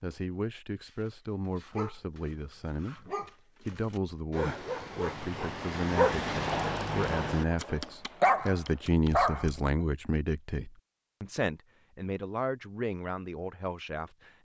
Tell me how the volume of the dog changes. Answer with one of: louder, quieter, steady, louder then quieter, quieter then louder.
louder.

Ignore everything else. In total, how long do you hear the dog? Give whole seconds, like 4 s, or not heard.
9 s.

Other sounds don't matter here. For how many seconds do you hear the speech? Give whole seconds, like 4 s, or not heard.
14 s.